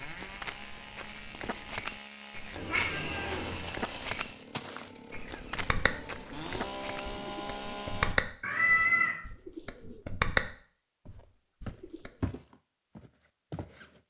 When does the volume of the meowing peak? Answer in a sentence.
The loudest moment of the meowing is at 9 seconds.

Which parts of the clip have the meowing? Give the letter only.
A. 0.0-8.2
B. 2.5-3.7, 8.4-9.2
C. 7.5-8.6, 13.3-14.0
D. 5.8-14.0
B.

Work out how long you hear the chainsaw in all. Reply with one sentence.
The chainsaw can be heard for 8 seconds in total.